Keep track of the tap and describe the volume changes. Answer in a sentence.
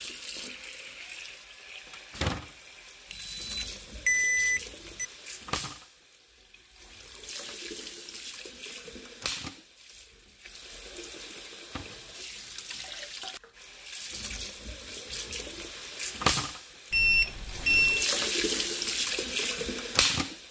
The loudness of the tap goes up.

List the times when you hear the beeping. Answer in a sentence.
You can hear the beeping from 3.1 to 5.0 s and from 16.9 to 18.1 s.